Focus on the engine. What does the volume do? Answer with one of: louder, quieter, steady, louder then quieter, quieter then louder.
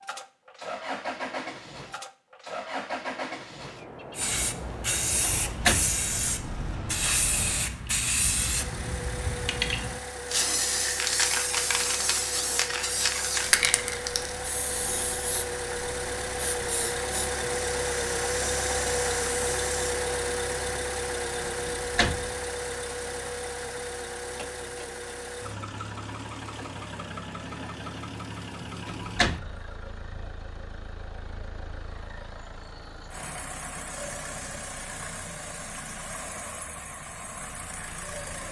louder then quieter.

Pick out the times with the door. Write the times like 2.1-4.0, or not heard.
5.0-6.0, 21.4-22.4, 28.6-29.6.